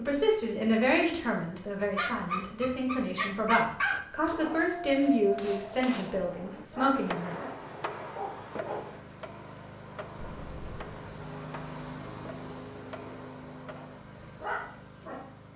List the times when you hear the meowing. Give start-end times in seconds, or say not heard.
10.2-10.9.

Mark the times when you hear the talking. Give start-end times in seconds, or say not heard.
0.0-7.3.